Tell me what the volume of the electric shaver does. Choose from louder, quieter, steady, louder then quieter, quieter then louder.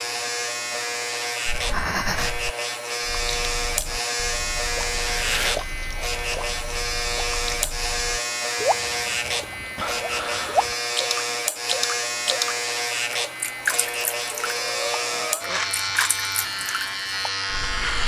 steady.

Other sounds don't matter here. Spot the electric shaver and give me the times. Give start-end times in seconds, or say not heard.
0.0-18.0.